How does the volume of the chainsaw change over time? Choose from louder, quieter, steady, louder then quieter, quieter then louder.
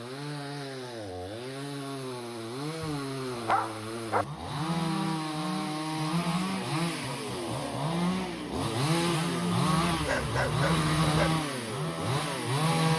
louder.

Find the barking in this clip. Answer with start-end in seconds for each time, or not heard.
2.8-4.2, 9.8-11.4.